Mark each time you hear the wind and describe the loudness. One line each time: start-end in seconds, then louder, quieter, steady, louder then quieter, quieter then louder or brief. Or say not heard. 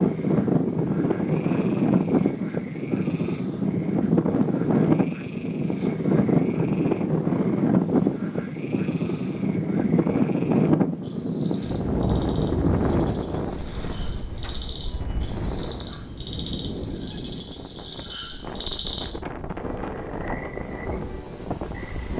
0.0-22.1 quieter.